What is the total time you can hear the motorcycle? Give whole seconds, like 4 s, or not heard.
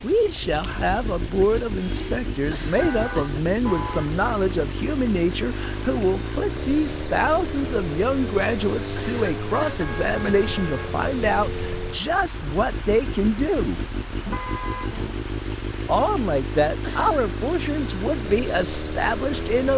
20 s.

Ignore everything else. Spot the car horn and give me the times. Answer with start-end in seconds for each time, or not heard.
1.8-4.2, 9.7-10.9, 14.2-15.2.